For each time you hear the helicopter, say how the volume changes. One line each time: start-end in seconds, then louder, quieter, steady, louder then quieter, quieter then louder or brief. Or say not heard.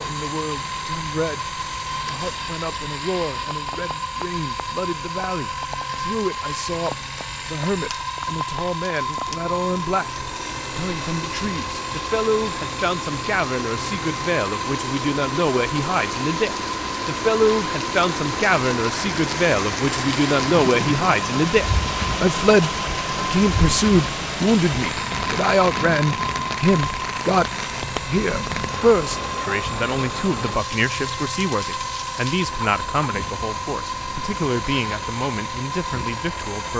0.0-36.7 steady.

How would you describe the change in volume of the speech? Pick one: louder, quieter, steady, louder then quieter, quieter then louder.
louder then quieter.